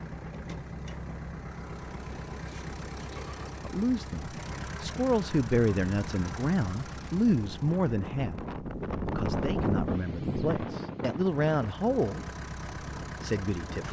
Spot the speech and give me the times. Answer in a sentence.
You can hear the speech from 3.6 to 8.4 s, from 9.1 to 12.2 s and from 13.0 to 13.8 s.